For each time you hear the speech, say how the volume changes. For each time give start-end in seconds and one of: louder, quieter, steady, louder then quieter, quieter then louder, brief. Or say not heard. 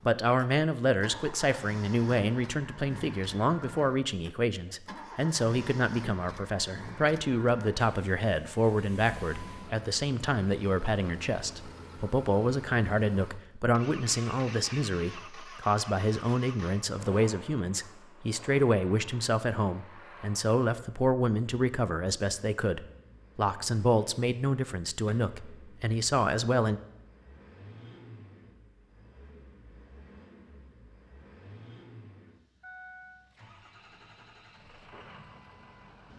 0.1-26.8 steady.